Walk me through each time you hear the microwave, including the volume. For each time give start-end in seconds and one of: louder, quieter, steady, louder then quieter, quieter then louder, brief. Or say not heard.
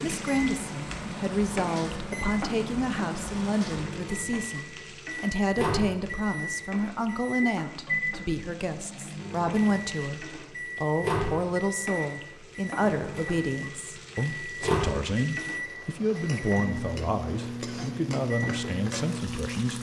0.0-19.7 steady.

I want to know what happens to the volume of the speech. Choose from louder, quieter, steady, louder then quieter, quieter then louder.
steady.